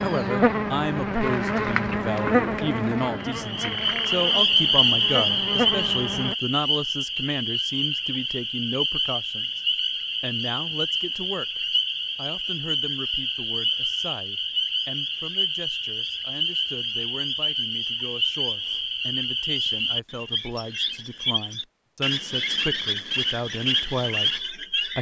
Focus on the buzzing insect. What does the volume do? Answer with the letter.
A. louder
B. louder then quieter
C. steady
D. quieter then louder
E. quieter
D.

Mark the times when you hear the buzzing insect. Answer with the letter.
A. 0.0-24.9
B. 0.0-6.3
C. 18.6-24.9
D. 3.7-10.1
B.